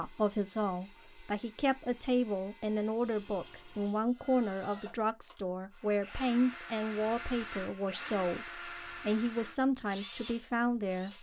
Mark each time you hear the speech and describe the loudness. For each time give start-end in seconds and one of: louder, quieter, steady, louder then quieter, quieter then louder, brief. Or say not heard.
0.0-11.1 steady.